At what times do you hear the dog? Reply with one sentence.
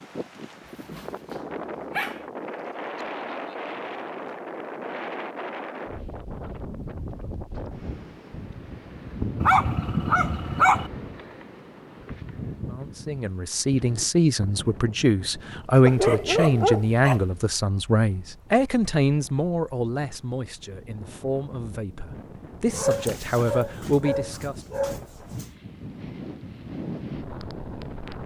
You can hear the dog from 0.7 to 2.2 s, from 9.4 to 10.9 s, from 15.8 to 17.2 s and from 22.7 to 25.5 s.